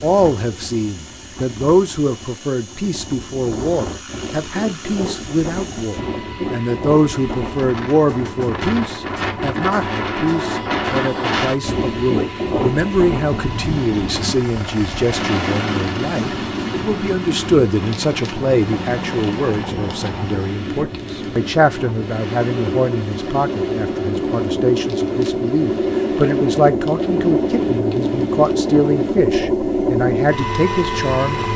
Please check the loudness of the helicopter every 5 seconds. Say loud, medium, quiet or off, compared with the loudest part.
quiet, quiet, quiet, medium, medium, loud, loud.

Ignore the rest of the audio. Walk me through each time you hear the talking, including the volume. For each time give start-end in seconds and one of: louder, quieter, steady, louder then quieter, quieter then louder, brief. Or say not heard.
0.0-31.5 steady.